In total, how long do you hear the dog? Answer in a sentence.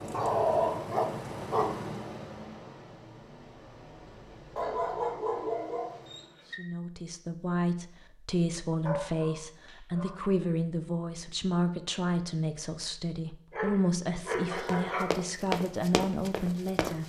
You can hear the dog for 7 seconds altogether.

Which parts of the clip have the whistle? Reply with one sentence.
The whistle can't be heard in this clip.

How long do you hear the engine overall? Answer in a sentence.
You can hear the engine for 6 seconds altogether.